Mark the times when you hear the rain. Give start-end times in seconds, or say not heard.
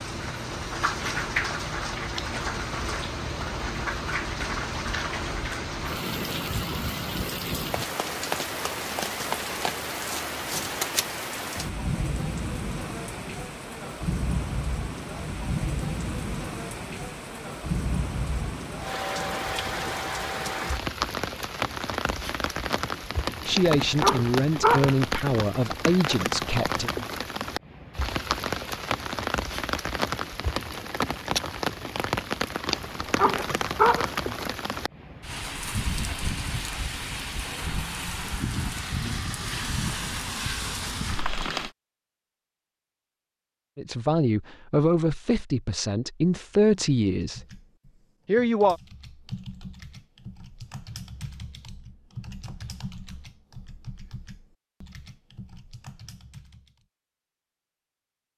0.0-41.7.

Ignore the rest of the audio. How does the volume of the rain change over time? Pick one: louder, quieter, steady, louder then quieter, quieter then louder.
steady.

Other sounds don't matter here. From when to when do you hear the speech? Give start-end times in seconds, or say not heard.
23.4-26.9, 43.8-47.4, 48.2-48.8.